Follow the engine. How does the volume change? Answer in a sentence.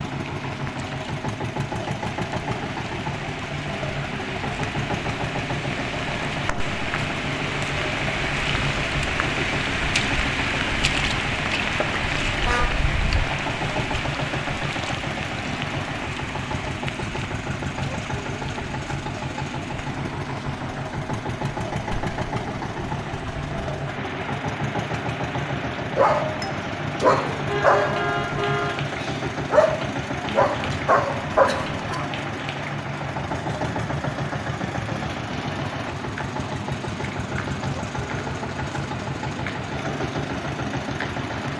The volume of the engine stays about the same.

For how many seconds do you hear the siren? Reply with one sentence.
You can't hear the siren here.